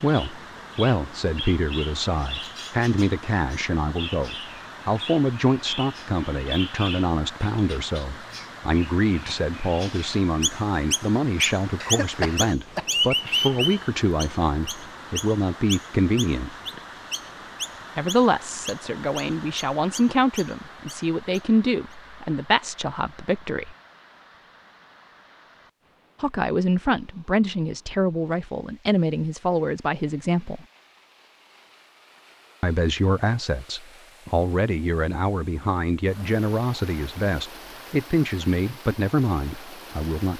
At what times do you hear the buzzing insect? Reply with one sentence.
The buzzing insect can't be heard in this clip.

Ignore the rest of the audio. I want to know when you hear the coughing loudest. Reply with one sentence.
The loudest moment of the coughing is at 12 seconds.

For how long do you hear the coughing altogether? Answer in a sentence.
You can hear the coughing for 2 seconds altogether.